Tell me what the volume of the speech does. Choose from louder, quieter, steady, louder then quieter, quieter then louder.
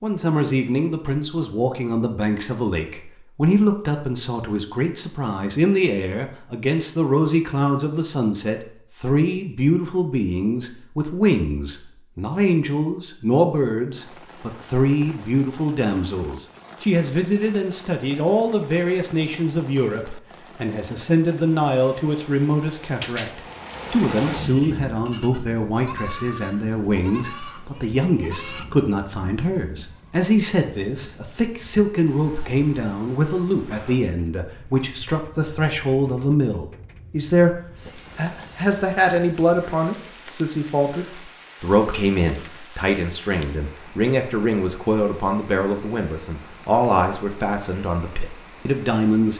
steady.